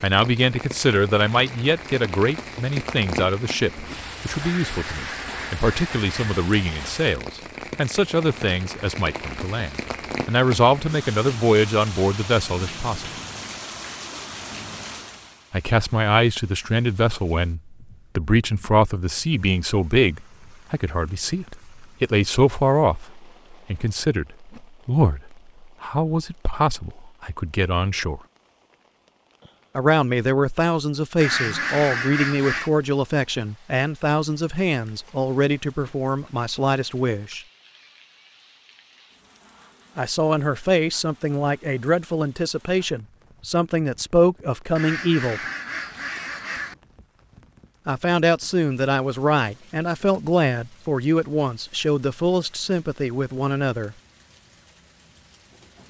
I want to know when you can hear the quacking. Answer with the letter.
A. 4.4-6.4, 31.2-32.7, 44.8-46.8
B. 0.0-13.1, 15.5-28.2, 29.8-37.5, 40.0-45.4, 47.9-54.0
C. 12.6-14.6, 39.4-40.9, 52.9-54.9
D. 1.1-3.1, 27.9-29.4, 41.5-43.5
A.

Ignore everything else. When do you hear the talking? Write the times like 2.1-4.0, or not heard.
0.0-13.1, 15.5-28.2, 29.8-37.5, 40.0-45.4, 47.9-54.0.